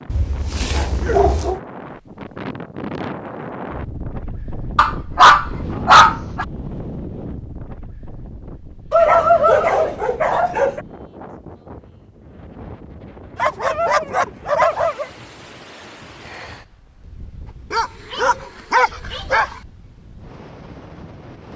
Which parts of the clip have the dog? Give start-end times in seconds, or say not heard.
0.1-1.6, 4.8-6.5, 8.9-10.8, 13.3-15.1, 17.7-19.5.